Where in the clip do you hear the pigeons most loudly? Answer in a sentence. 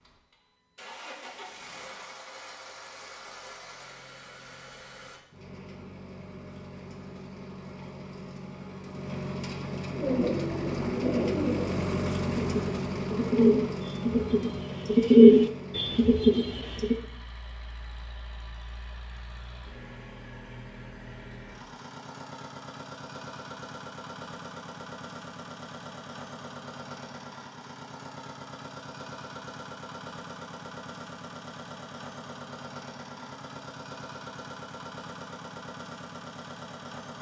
The volume of the pigeons peaks at 15 seconds.